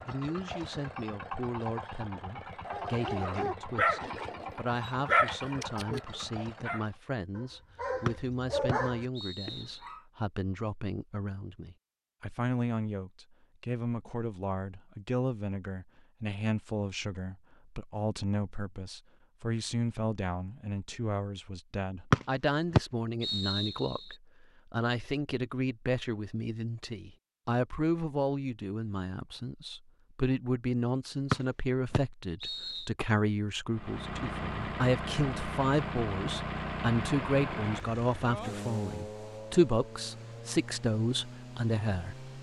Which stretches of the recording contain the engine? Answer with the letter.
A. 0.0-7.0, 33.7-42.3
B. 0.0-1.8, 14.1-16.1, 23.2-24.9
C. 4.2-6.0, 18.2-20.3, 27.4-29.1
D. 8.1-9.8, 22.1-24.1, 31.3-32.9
A.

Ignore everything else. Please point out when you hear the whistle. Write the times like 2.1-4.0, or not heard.
8.1-9.8, 22.1-24.1, 31.3-32.9.